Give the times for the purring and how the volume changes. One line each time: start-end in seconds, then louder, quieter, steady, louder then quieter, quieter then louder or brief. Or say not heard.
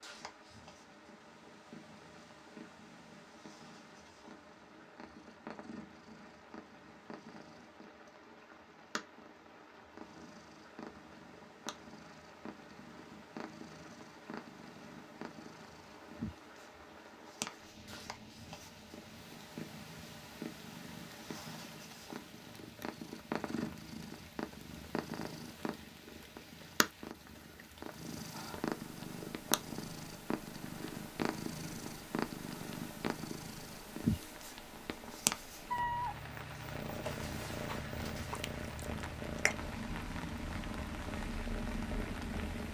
0.0-42.6 louder.